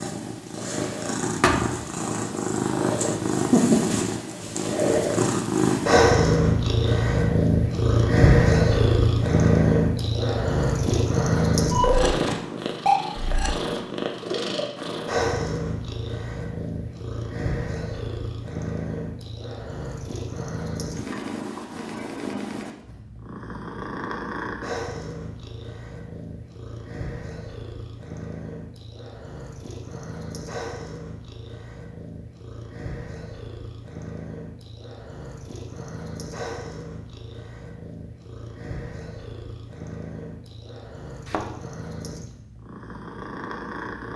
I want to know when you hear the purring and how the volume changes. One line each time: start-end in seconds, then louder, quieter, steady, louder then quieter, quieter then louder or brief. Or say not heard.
0.0-44.1 quieter.